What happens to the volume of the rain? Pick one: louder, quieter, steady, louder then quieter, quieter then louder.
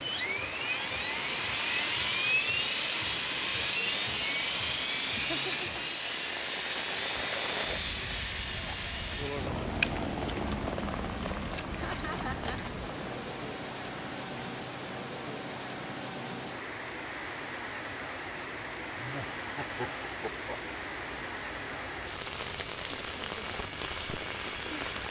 steady.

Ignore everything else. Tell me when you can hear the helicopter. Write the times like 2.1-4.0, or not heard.
0.0-25.0.